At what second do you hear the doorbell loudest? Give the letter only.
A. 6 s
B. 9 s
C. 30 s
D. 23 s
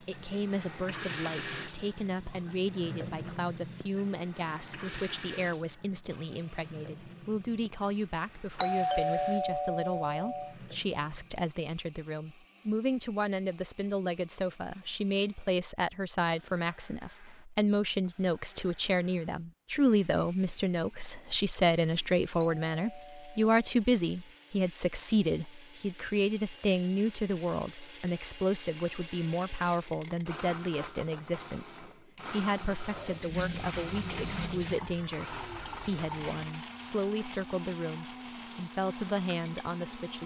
B.